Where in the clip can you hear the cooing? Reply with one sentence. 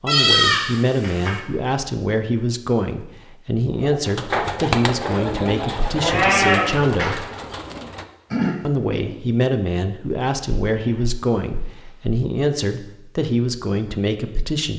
You can hear the cooing from 3.7 to 9.2 s.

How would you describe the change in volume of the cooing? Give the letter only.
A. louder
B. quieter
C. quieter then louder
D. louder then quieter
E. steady
C.